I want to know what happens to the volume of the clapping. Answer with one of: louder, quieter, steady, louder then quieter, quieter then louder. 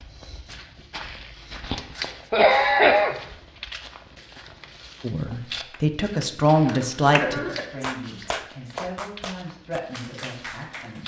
louder then quieter.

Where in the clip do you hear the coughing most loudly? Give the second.
3 s.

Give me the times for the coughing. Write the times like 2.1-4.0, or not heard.
1.6-3.2, 6.7-7.7.